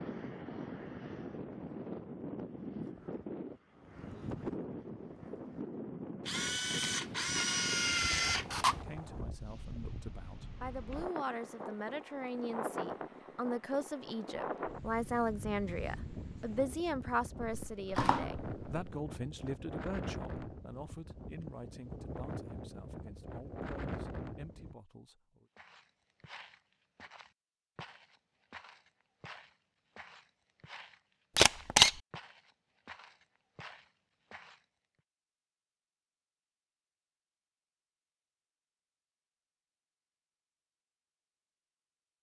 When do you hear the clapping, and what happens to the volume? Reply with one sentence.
You can't hear the clapping here.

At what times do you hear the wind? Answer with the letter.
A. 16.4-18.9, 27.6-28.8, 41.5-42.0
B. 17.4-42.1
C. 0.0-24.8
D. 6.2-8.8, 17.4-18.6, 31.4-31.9
C.